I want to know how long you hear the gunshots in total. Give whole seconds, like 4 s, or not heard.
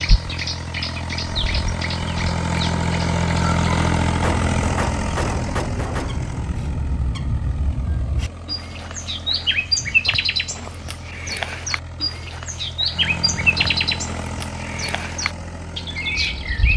2 s.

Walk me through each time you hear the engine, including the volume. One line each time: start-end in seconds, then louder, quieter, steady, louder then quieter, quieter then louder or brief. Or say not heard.
0.0-16.7 quieter then louder.